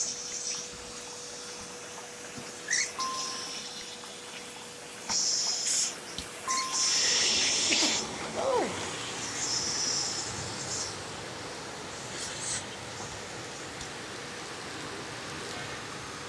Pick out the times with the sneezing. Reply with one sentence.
The sneezing can be heard from 6.8 to 8.8 s.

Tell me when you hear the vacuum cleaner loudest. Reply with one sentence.
The loudest moment of the vacuum cleaner is at 7 seconds.